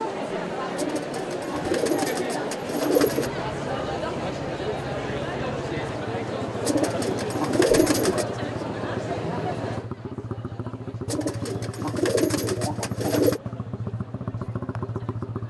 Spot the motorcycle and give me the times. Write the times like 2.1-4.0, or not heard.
3.0-15.4.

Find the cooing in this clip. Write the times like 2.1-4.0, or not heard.
0.8-3.3, 6.7-8.2, 11.1-13.4.